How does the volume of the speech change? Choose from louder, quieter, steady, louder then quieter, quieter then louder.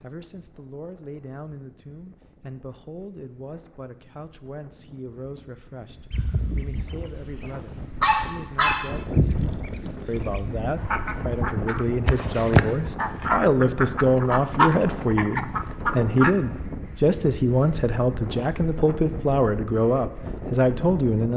louder.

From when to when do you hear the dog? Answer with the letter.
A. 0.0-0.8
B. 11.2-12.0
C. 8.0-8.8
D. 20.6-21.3
C.